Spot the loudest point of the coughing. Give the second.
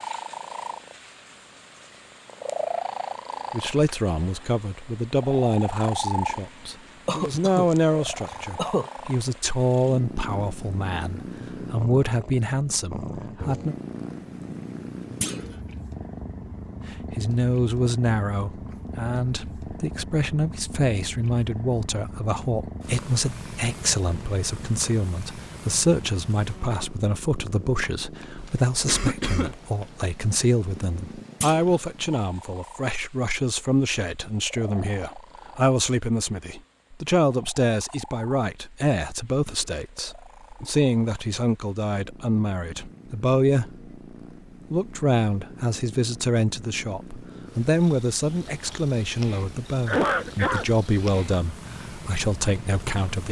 50 s.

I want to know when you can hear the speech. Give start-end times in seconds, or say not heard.
3.5-13.8, 16.9-43.9, 44.7-53.2.